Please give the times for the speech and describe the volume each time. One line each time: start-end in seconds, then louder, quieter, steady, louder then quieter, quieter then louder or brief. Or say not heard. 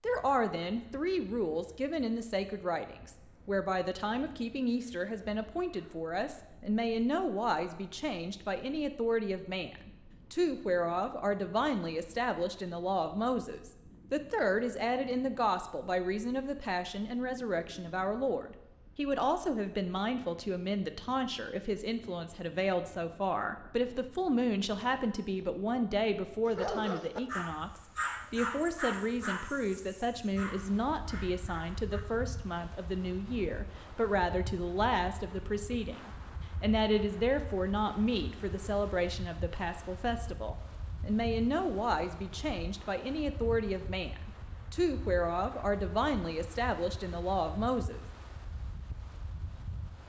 0.0-48.0 steady.